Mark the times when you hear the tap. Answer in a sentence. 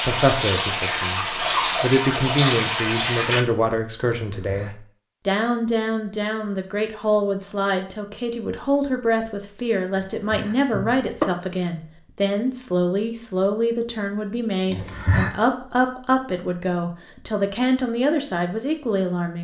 You can hear the tap from 0.0 to 3.5 s.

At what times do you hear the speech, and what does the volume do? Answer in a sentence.
The speech can be heard from 0.0 to 19.3 s, at a steady volume.